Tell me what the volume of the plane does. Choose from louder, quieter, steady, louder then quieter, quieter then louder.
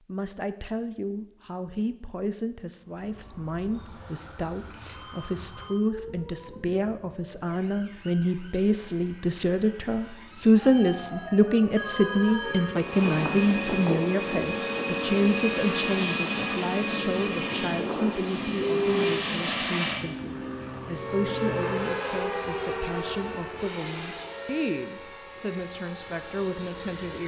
quieter.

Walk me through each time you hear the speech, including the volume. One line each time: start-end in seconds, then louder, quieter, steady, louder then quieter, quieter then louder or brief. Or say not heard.
0.1-27.2 louder then quieter.